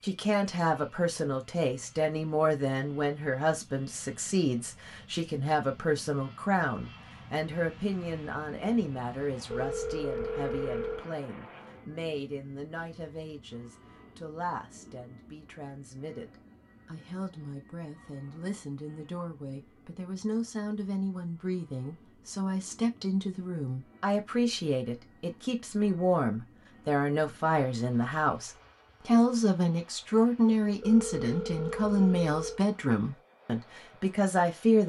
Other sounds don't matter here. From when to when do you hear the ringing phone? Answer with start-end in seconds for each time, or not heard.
9.5-11.1, 30.8-32.6.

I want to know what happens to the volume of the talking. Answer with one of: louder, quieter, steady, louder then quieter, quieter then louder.
quieter then louder.